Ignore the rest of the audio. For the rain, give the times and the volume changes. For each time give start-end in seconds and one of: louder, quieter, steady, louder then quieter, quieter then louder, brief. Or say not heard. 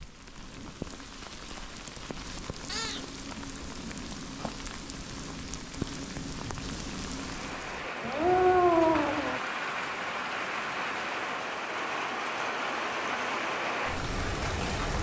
0.0-14.9 louder.